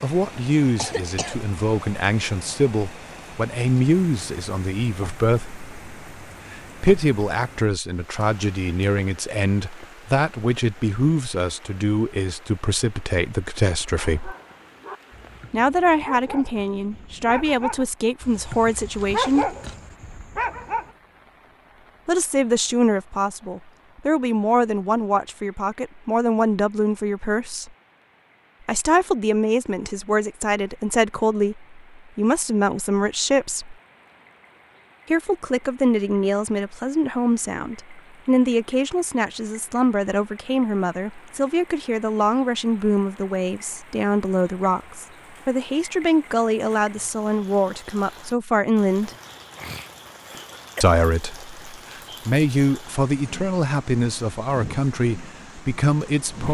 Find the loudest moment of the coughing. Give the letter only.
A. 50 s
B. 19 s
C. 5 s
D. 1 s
D.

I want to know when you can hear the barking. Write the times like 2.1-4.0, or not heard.
14.0-20.9.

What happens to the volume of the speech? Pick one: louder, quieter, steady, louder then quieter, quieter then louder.
steady.